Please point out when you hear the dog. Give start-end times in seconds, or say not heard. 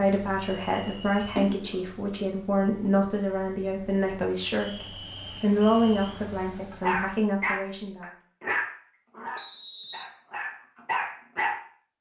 6.7-11.6.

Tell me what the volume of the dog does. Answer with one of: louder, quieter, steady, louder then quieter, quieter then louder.
quieter then louder.